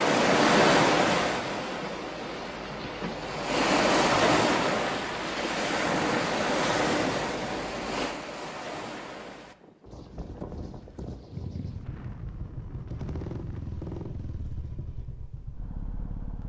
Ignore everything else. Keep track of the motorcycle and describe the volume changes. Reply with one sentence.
The volume of the motorcycle goes up, then down.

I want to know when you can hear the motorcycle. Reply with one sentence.
You can hear the motorcycle from 11.3 to 16.4 s.